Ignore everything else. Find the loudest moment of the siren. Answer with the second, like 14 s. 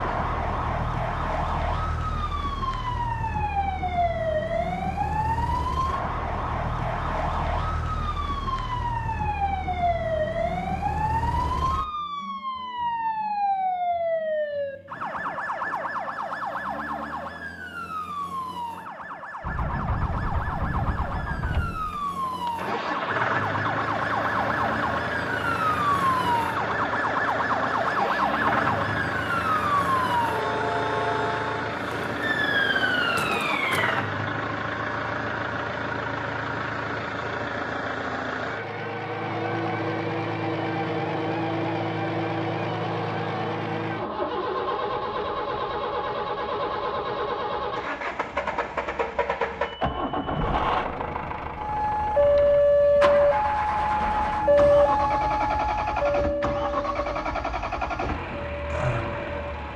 53 s.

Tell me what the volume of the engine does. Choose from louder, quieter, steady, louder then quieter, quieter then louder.
steady.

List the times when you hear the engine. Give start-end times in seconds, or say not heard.
19.4-59.7.